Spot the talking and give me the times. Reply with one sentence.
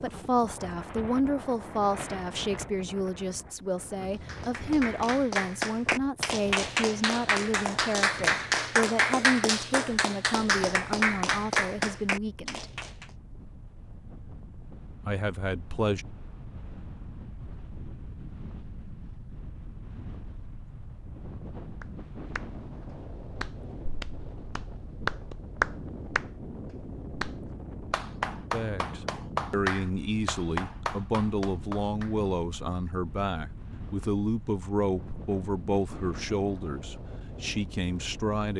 The talking can be heard from 0.0 to 12.7 s, from 15.1 to 16.1 s and from 28.5 to 38.5 s.